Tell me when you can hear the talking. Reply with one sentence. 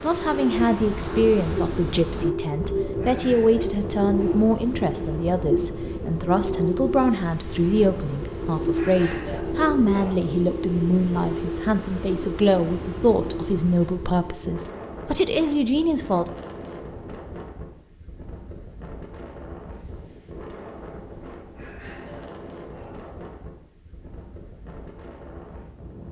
The talking can be heard from 0.0 to 16.3 s.